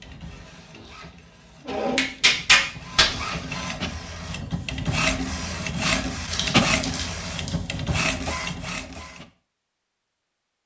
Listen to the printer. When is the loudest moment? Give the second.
6 s.